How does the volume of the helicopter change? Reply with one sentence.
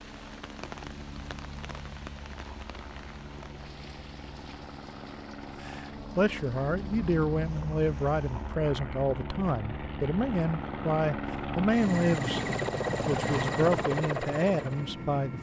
The volume of the helicopter goes up.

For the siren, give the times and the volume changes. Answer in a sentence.
The siren can't be heard in this clip.